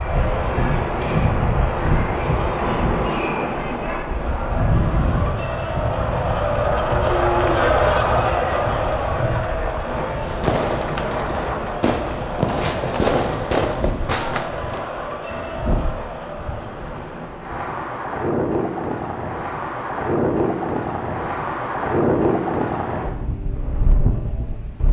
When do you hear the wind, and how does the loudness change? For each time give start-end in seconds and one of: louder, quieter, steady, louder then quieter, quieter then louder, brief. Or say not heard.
0.0-24.8 quieter then louder.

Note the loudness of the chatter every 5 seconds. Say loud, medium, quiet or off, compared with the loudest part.
medium, loud, medium, medium, off.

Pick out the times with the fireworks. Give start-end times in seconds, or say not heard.
10.2-15.7.